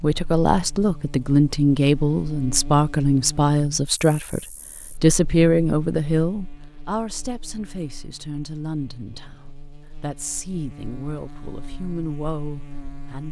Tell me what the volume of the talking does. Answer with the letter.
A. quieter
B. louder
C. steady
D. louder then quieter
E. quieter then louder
A.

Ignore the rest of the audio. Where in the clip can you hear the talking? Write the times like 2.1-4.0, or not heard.
0.0-13.2.